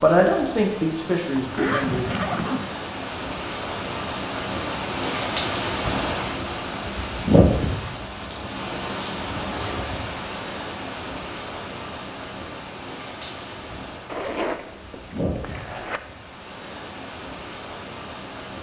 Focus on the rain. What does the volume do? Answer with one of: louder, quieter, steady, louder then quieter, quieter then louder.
louder then quieter.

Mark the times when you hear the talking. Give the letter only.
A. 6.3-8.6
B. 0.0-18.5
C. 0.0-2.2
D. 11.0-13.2
C.